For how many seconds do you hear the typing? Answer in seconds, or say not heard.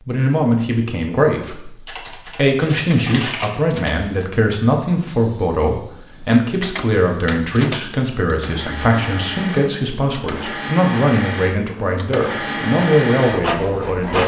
2 s.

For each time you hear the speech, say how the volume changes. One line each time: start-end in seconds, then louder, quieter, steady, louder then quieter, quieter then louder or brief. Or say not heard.
0.1-14.2 steady.